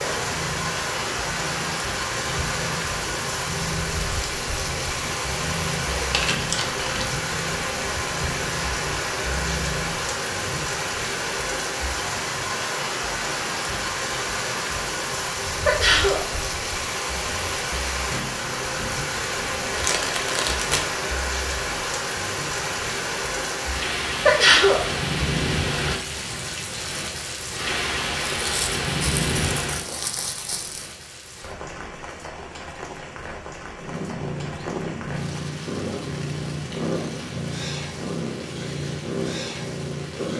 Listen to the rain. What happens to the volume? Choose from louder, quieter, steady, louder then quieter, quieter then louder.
quieter.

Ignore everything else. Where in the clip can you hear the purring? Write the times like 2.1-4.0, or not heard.
0.0-10.8, 33.8-40.3.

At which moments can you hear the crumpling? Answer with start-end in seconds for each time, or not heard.
6.1-7.0, 19.7-20.9, 28.3-30.9.